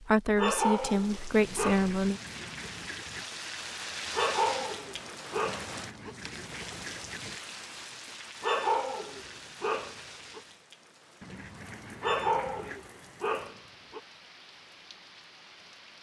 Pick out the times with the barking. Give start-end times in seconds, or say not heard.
0.3-1.9, 4.1-6.2, 8.4-10.4, 12.0-14.0.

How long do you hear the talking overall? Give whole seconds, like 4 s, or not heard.
2 s.